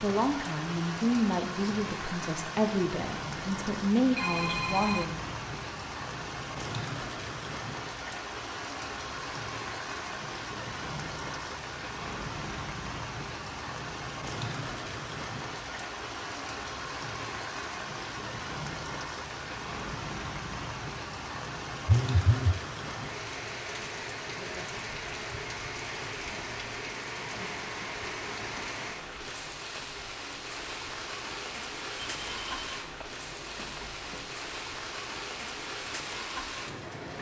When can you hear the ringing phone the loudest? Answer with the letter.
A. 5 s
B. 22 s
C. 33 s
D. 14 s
B.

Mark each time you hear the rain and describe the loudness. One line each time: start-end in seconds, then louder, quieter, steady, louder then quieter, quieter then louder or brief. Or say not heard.
0.0-37.1 steady.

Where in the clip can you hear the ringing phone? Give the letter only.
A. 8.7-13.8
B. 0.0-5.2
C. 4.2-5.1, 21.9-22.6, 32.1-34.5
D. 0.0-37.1
C.